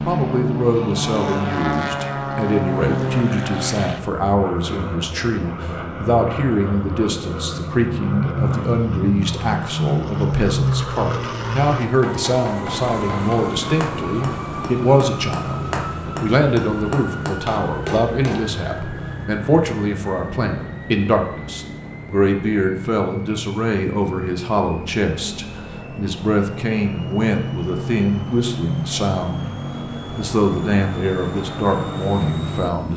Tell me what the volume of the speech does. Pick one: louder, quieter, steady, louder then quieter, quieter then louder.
steady.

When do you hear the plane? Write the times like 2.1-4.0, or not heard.
0.0-32.9.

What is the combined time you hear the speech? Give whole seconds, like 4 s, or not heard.
33 s.